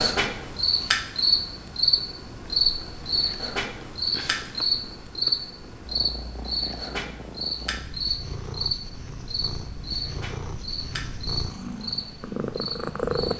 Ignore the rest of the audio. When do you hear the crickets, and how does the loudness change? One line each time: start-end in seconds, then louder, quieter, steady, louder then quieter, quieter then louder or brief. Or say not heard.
0.0-13.3 quieter.